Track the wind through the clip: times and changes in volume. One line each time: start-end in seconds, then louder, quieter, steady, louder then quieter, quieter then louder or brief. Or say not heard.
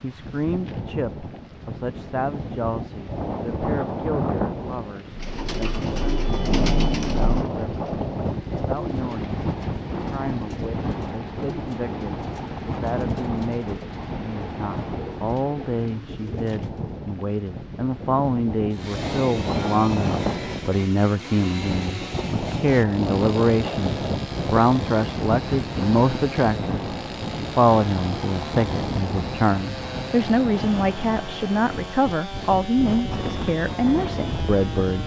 0.0-35.0 steady.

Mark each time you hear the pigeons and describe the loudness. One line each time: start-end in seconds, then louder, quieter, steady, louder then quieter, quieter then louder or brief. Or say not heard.
5.2-16.9 quieter.